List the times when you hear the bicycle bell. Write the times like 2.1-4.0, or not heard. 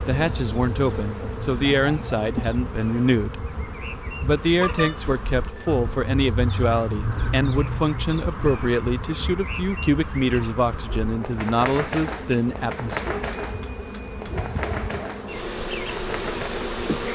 4.6-6.0, 13.3-14.6.